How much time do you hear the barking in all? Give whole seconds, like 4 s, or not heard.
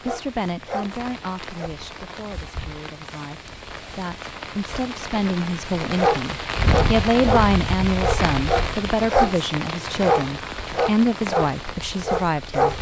9 s.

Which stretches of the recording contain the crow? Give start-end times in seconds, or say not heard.
not heard.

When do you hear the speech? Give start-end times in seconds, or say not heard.
0.1-12.7.